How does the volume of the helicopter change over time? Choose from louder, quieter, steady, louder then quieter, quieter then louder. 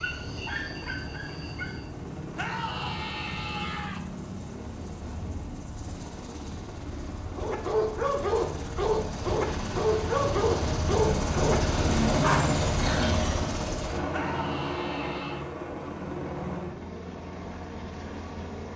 louder then quieter.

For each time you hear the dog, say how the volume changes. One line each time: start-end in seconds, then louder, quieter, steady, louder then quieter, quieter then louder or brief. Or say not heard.
0.0-1.9 brief
7.3-13.6 steady.